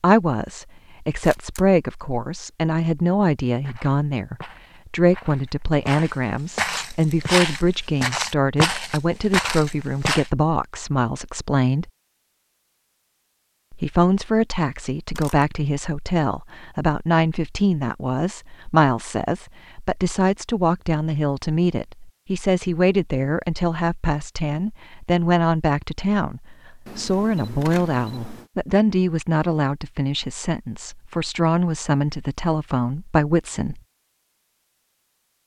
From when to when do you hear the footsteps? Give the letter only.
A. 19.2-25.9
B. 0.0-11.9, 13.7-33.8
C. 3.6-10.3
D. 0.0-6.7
C.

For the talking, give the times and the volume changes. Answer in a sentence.
The talking can be heard from 0.0 to 11.9 s, at a steady volume; and from 13.7 to 33.8 s, at a steady volume.